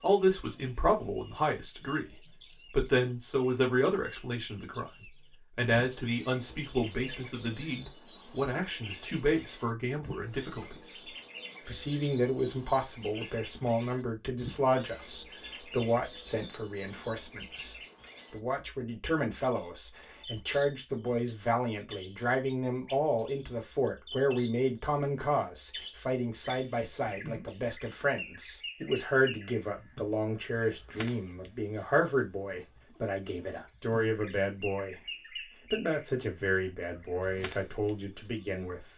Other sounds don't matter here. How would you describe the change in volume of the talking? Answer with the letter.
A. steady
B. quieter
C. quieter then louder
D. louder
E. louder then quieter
A.